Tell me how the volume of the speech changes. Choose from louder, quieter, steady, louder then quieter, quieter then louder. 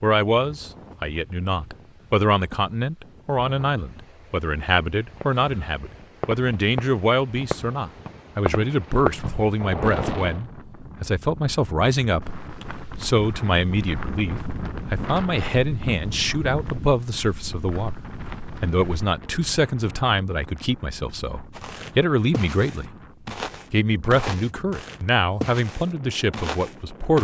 steady.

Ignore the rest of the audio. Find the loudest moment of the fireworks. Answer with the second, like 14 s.
9 s.